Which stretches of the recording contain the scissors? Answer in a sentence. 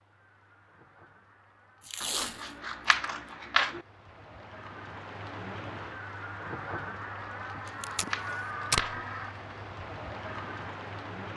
You can hear the scissors from 2.0 to 3.8 s and from 7.2 to 9.1 s.